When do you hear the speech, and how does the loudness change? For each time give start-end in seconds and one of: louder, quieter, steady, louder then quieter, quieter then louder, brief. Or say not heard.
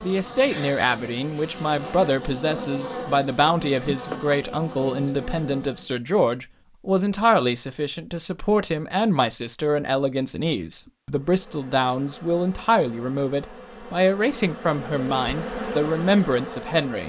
0.0-17.0 steady.